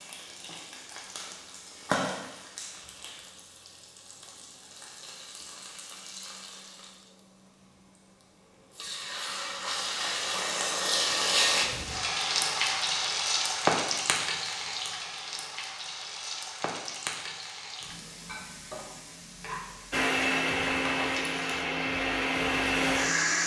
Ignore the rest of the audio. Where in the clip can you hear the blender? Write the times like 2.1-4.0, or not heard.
19.9-23.4.